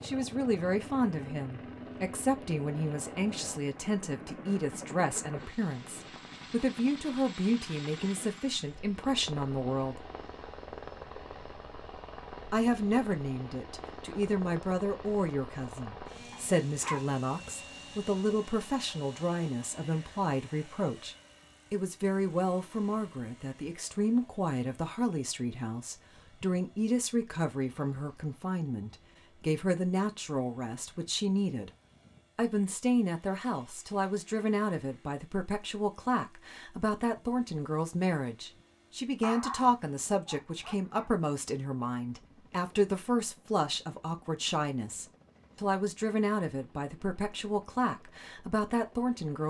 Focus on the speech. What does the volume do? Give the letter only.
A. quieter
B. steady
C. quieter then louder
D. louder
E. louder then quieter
B.